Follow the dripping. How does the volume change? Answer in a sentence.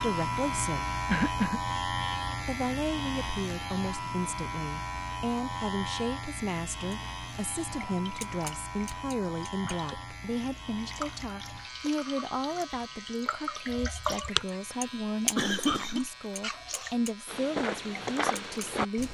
The loudness of the dripping goes up, then down.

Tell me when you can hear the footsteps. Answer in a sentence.
You can hear the footsteps from 17.2 to 19.0 s.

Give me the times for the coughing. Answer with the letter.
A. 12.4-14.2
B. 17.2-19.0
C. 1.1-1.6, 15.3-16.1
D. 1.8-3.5
C.